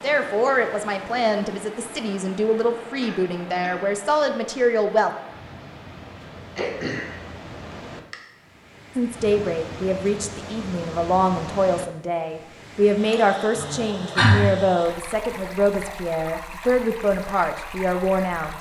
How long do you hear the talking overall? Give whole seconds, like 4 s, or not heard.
15 s.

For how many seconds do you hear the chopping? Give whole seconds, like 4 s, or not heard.
not heard.